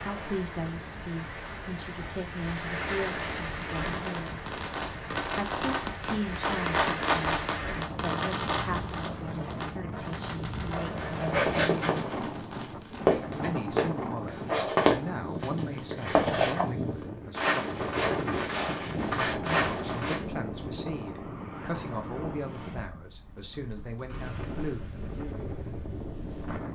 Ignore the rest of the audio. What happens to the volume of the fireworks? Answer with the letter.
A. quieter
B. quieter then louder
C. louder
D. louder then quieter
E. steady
D.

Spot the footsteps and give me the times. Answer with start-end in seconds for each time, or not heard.
10.7-20.2.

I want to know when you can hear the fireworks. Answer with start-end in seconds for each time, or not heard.
2.4-13.2.